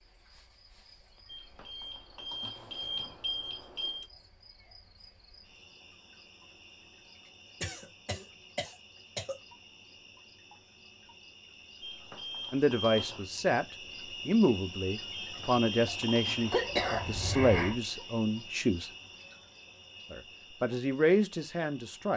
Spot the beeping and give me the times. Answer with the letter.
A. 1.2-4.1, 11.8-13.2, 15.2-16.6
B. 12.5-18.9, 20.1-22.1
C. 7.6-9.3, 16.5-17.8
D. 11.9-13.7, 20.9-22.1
A.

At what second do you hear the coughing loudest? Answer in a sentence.
The loudest moment of the coughing is at 17 seconds.